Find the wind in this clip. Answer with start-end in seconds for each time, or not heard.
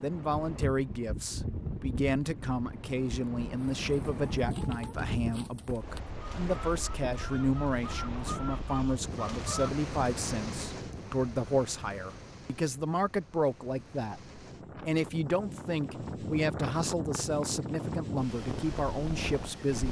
0.0-19.8.